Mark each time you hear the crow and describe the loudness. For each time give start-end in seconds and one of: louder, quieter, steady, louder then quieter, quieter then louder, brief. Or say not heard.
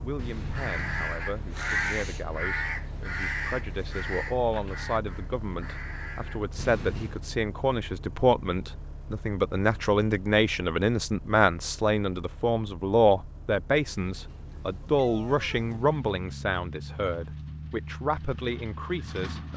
0.4-6.5 quieter.